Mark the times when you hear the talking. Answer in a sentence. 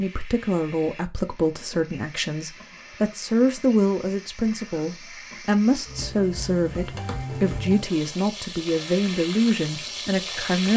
You can hear the talking from 0.0 to 10.7 s.